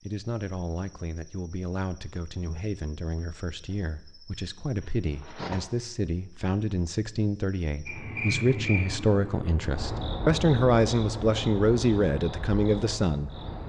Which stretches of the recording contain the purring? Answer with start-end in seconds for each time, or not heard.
not heard.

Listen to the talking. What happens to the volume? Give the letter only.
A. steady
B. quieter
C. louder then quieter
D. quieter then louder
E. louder
E.